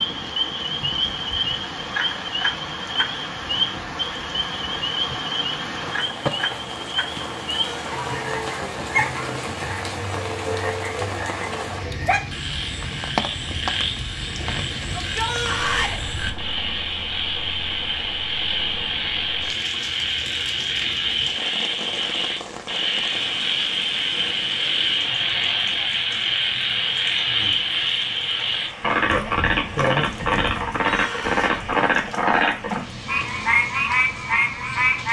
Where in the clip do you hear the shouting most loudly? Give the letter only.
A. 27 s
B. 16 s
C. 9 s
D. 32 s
B.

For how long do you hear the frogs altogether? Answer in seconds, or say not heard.
35 s.